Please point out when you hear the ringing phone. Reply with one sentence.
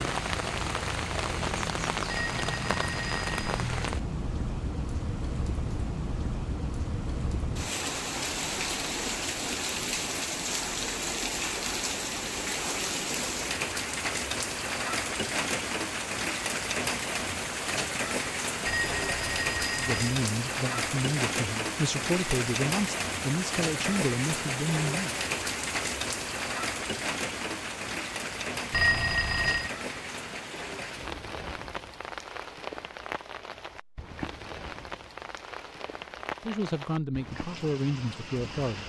The ringing phone can be heard from 2.0 to 3.5 s, from 18.6 to 20.0 s and from 28.7 to 29.7 s.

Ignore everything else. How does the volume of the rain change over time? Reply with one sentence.
The volume of the rain goes down.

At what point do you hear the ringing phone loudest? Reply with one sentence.
The volume of the ringing phone peaks at 29 seconds.